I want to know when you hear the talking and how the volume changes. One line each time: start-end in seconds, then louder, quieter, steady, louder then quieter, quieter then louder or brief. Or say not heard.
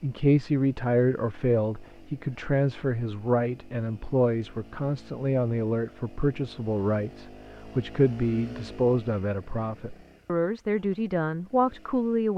0.0-12.3 steady.